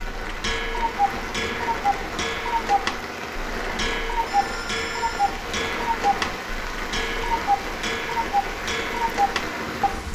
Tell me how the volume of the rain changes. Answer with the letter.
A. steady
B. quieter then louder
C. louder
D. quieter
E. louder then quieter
A.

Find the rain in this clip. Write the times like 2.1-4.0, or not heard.
0.0-10.1.